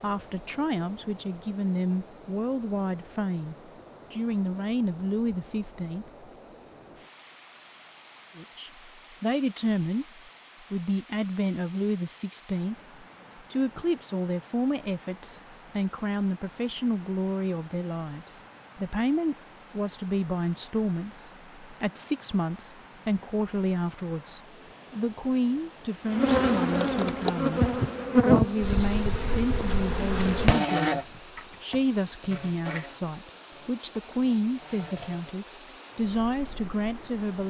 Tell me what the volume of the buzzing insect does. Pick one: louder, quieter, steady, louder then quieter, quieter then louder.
quieter.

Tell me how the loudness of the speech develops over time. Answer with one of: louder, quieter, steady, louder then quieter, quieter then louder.
steady.